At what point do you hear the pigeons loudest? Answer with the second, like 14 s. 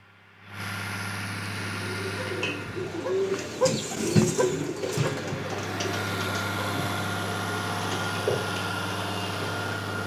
4 s.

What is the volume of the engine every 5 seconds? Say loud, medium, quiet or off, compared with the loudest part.
medium, loud.